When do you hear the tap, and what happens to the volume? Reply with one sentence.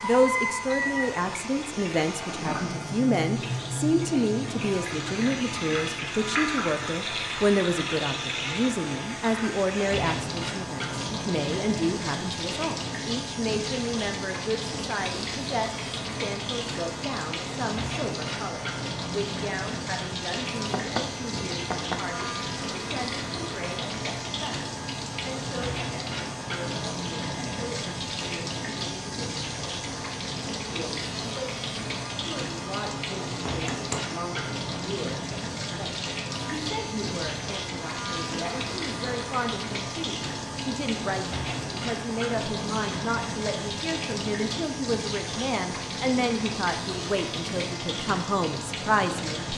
You can hear the tap from 0.0 to 49.5 s, at a steady volume.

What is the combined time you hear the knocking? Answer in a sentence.
You can hear the knocking for 2 seconds altogether.